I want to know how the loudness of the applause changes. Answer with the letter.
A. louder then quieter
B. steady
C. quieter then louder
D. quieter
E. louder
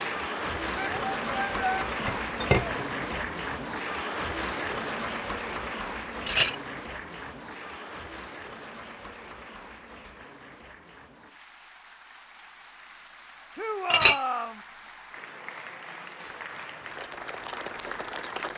C.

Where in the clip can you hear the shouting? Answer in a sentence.
You can hear the shouting from 0.8 to 1.9 s and from 13.6 to 14.6 s.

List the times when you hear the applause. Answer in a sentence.
The applause can be heard from 0.0 to 18.5 s.